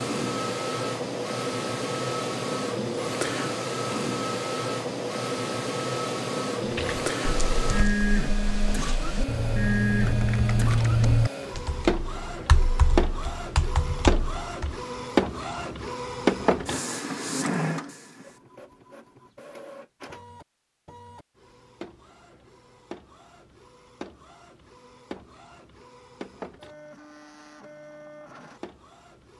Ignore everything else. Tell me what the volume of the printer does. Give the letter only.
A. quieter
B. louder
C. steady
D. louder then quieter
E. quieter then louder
A.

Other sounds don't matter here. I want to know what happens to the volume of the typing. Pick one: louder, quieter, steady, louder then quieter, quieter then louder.
louder then quieter.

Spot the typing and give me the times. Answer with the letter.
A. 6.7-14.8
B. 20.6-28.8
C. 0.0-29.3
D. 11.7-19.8
A.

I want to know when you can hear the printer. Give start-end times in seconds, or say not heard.
0.0-29.3.